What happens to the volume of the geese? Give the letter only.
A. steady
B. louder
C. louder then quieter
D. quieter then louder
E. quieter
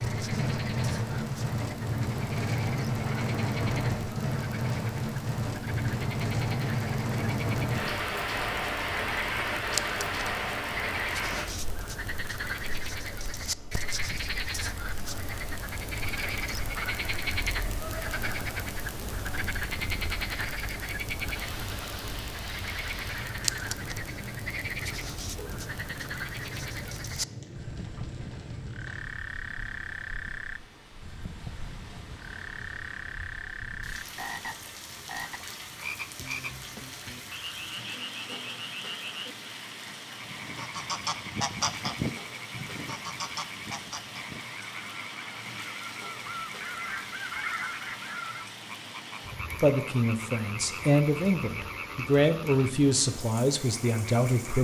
D.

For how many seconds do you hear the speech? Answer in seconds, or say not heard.
5 s.